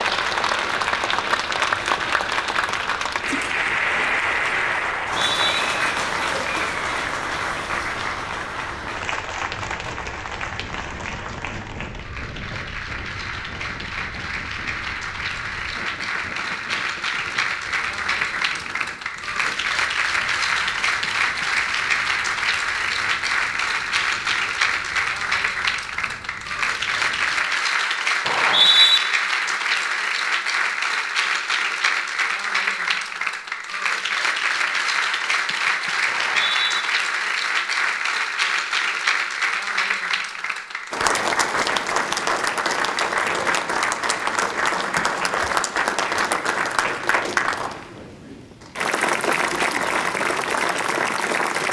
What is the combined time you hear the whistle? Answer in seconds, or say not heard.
2 s.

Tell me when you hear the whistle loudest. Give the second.
29 s.